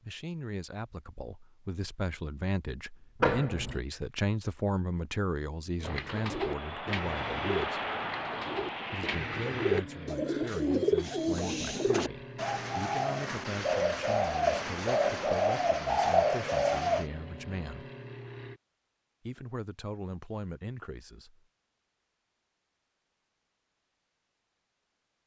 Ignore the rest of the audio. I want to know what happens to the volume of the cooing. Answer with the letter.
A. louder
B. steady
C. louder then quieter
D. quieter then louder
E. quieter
A.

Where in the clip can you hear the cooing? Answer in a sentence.
The cooing can be heard from 5.8 to 17.1 s.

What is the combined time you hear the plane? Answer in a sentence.
You can hear the plane for 13 seconds altogether.